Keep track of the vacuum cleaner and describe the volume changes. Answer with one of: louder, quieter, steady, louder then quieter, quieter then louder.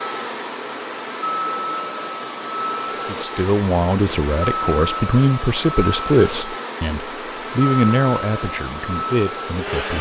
steady.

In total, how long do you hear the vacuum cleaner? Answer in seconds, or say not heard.
10 s.